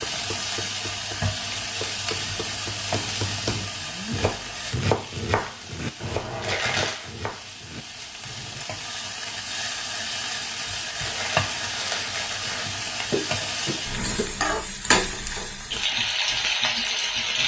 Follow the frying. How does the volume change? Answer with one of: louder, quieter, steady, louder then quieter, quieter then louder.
quieter then louder.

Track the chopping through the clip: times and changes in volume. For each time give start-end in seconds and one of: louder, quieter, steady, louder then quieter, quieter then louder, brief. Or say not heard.
0.0-8.7 louder then quieter.